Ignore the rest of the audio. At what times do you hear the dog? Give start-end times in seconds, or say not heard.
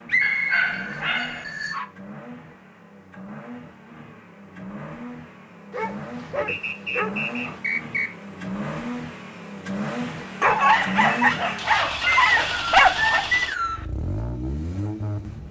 0.2-1.9, 5.7-7.6, 10.4-13.2.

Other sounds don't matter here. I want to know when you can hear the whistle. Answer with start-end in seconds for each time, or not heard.
0.1-0.7, 6.5-8.1, 12.1-13.8.